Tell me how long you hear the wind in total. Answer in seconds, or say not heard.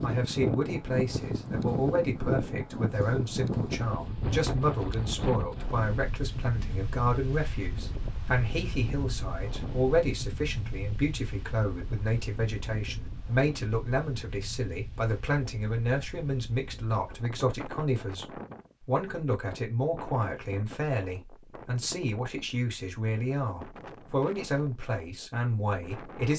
26 s.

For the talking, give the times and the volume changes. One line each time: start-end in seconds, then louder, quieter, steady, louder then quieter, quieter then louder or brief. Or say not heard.
0.0-18.2 steady
18.9-26.3 steady.